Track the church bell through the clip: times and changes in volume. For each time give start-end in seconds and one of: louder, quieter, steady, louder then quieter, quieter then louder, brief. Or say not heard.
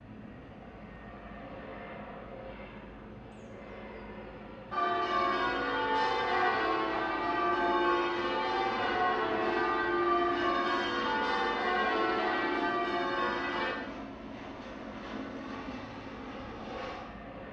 4.7-13.8 steady.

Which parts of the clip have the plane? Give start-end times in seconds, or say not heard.
0.0-17.4.